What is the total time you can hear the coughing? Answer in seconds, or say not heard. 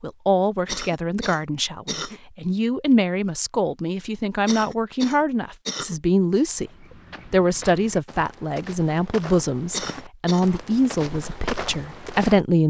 4 s.